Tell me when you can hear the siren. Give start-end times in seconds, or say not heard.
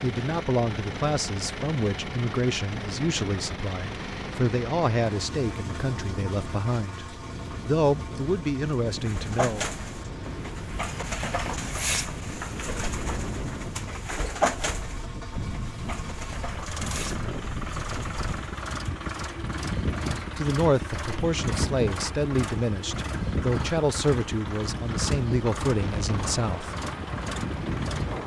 not heard.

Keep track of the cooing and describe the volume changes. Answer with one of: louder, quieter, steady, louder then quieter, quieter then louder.
quieter.